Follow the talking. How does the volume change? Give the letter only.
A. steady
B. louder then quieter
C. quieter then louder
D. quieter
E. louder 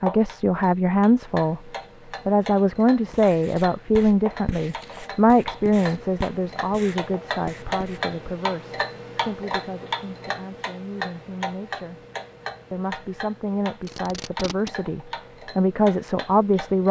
C.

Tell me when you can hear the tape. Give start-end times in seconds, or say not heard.
13.8-14.8.